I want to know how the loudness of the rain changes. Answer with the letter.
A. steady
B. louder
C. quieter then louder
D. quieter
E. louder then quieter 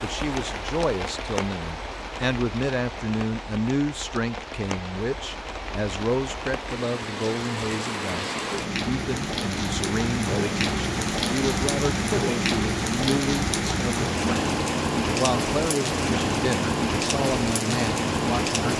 B.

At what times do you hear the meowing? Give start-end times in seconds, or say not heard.
not heard.